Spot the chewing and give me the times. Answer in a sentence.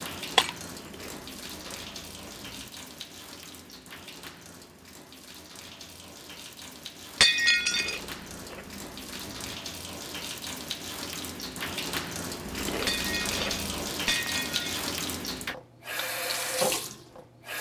The chewing can be heard from 0.7 to 2.7 s, from 7.5 to 9.6 s and from 12.4 to 13.9 s.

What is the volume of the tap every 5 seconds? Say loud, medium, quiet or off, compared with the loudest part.
medium, medium, loud, loud.